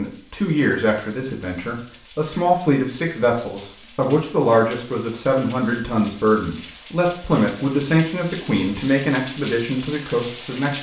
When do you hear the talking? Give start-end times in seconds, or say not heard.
0.0-10.7.